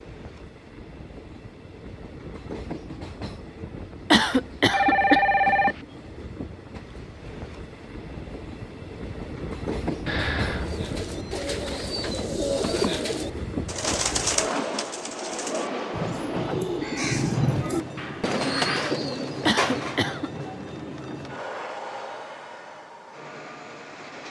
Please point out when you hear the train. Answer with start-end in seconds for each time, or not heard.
0.0-24.2.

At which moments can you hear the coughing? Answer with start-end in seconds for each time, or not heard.
4.1-5.2, 19.4-20.3.